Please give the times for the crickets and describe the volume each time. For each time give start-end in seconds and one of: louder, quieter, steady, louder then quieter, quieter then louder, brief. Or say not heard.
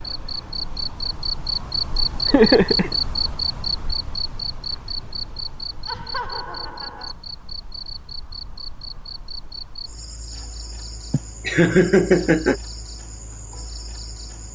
0.0-14.5 quieter.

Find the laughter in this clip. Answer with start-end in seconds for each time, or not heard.
2.2-3.0, 5.8-7.2, 11.1-12.6.